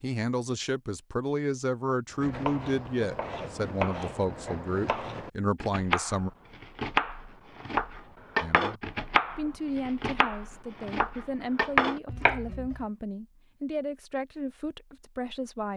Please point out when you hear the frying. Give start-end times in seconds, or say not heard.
not heard.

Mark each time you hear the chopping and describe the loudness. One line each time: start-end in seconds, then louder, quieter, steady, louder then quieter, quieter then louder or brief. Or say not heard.
2.1-12.8 louder.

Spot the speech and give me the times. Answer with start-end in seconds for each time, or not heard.
0.0-6.3, 8.4-15.7.